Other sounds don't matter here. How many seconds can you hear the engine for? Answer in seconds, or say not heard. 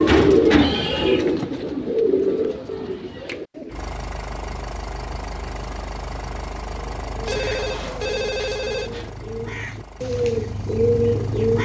8 s.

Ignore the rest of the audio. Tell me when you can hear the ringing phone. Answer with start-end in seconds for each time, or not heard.
2.2-3.0, 7.2-9.1.